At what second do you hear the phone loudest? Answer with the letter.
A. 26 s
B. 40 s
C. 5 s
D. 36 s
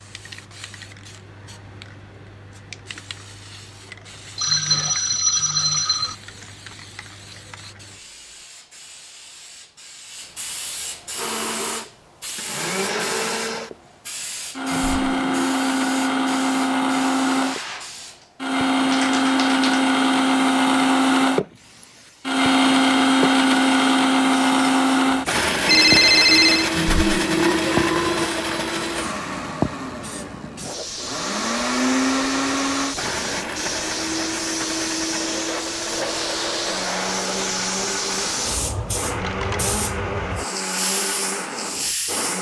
A.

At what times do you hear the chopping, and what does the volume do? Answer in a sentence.
The chopping can't be heard in this clip.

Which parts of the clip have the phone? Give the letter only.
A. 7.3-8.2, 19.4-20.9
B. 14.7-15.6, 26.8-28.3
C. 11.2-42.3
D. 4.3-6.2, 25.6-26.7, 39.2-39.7
D.